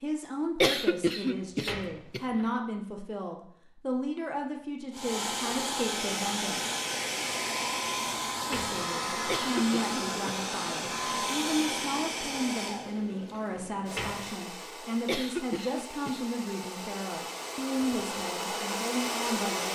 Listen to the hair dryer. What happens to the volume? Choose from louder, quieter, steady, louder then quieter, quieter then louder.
quieter then louder.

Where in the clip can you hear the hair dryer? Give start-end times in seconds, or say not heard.
4.9-19.7.